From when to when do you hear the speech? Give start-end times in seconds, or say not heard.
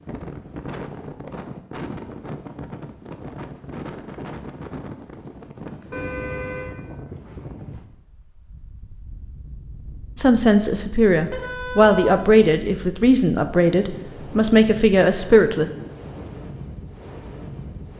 10.2-15.7.